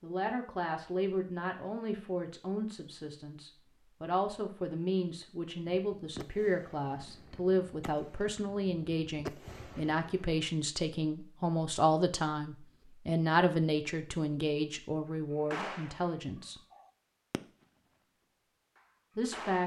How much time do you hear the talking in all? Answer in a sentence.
You can hear the talking for 17 seconds altogether.